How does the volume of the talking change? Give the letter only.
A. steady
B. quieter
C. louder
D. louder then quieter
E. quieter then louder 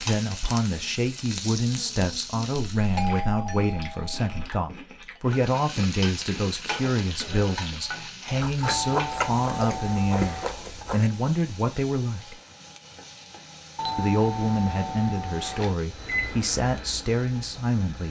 A.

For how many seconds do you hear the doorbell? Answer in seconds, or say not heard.
6 s.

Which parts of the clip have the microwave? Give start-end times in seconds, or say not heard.
15.8-18.0.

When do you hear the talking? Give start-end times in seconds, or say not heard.
0.0-12.4, 13.9-18.0.